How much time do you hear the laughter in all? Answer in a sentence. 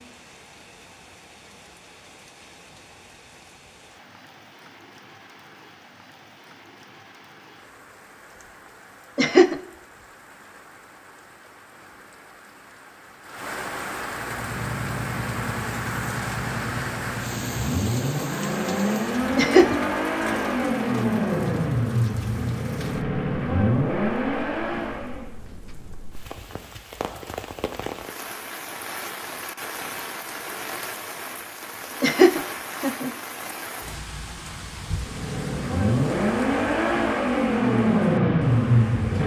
You can hear the laughter for 2 seconds altogether.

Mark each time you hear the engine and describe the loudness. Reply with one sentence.
You can hear the engine from 14.1 to 25.4 s, getting louder; and from 34.9 to 39.2 s, getting louder.